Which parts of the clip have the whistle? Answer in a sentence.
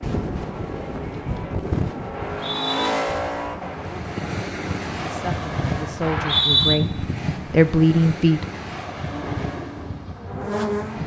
You can hear the whistle from 2.1 to 2.9 s and from 6.0 to 6.8 s.